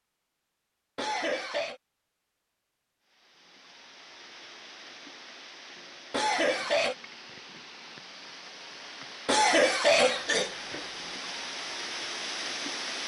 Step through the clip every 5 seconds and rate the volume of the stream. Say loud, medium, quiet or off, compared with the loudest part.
quiet, medium, loud.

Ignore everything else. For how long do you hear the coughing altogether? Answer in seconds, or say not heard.
3 s.